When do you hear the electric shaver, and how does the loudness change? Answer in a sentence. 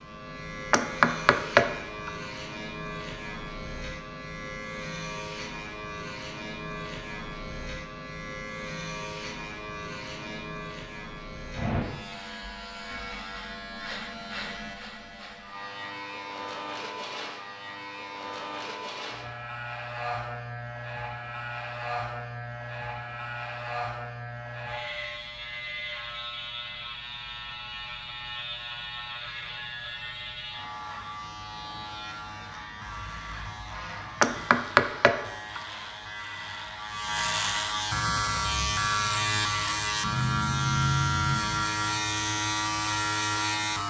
You can hear the electric shaver from 0.0 to 43.8 s, getting louder.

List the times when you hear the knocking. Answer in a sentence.
You can hear the knocking from 0.7 to 2.1 s and from 34.2 to 35.6 s.